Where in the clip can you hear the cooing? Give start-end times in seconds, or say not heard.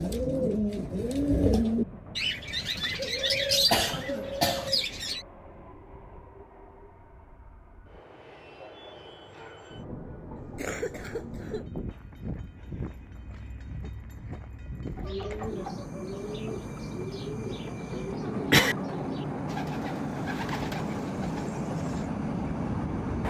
0.0-5.2, 14.9-22.1.